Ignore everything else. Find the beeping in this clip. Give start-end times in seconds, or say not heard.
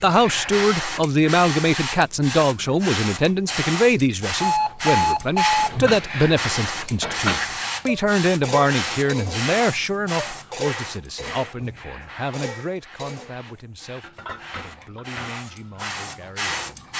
4.4-5.8.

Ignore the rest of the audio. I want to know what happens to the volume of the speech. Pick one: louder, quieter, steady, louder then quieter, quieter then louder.
quieter.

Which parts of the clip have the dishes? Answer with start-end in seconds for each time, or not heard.
5.6-16.2.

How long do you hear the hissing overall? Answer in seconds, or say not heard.
17 s.